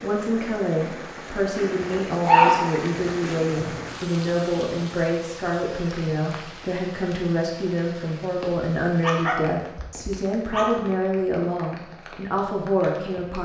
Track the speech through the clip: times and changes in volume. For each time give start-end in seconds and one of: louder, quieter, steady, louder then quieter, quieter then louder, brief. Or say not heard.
0.0-13.3 steady.